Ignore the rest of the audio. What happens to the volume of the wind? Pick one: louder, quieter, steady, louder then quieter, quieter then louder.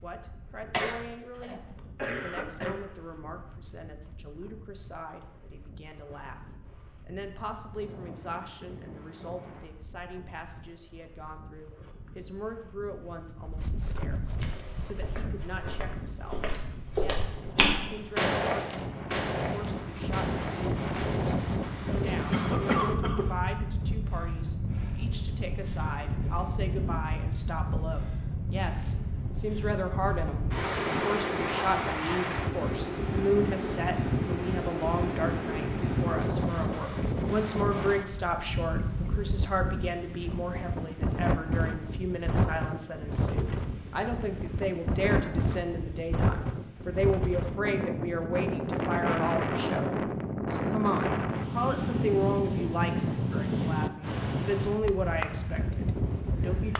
louder.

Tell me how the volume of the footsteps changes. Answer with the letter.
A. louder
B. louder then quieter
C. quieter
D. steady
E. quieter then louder
B.